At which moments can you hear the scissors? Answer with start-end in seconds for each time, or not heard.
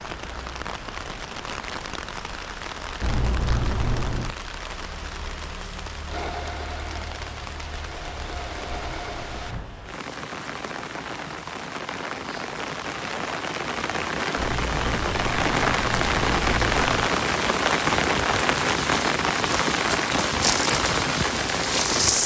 3.0-4.3, 14.3-17.1.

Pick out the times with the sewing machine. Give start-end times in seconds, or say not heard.
6.0-9.7.